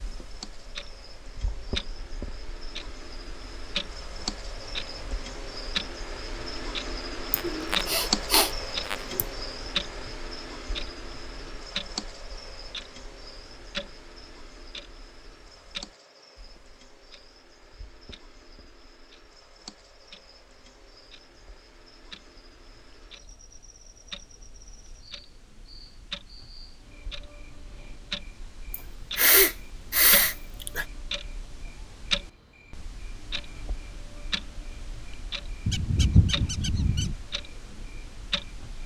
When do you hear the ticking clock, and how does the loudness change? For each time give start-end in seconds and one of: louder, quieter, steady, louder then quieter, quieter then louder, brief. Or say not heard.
0.0-38.8 quieter then louder.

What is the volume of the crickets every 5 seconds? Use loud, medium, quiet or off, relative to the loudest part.
medium, loud, medium, quiet, quiet, quiet, quiet, quiet.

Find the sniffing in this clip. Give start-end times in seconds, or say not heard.
7.3-9.2, 28.7-30.9.